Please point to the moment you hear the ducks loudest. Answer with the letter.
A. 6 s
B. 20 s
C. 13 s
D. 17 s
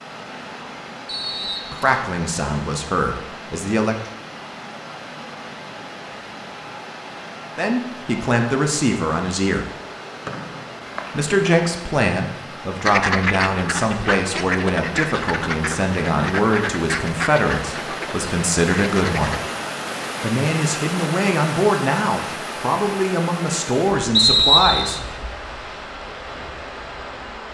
C.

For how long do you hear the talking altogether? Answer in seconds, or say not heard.
18 s.